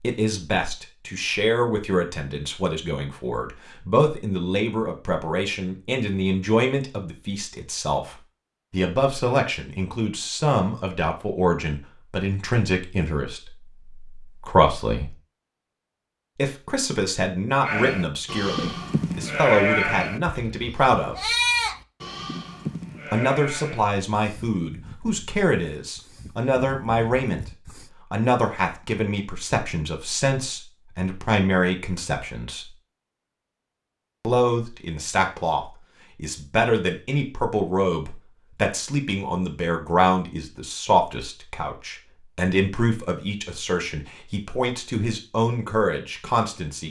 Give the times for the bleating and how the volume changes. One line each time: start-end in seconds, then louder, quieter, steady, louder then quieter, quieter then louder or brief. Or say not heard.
17.6-27.9 quieter.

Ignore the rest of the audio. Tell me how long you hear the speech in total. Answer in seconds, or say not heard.
42 s.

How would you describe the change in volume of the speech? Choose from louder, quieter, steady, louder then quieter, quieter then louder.
steady.